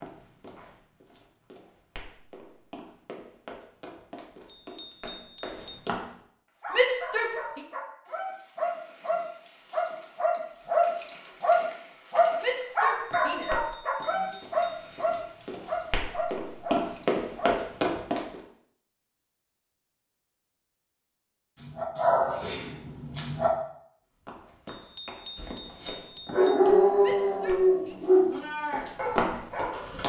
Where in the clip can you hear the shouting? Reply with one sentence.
You can hear the shouting from 6.7 to 7.6 s, from 12.4 to 14.3 s and from 27.0 to 27.9 s.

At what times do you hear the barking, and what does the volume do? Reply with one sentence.
The barking can be heard from 6.6 to 17.6 s, getting louder then quieter; briefly from 21.6 to 23.5 s; and from 25.4 to 30.0 s, getting quieter.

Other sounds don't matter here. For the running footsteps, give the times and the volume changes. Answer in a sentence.
You can hear the running footsteps from 0.0 to 6.0 s, getting louder; from 12.9 to 18.4 s, getting quieter then louder; and from 24.2 to 30.0 s, getting quieter then louder.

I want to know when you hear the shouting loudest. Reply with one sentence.
The loudest moment of the shouting is at 7 seconds.